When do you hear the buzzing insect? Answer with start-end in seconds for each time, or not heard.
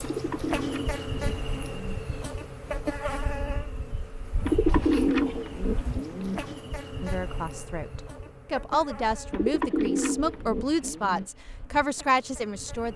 0.0-12.9.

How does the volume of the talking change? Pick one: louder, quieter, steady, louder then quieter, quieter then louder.
louder.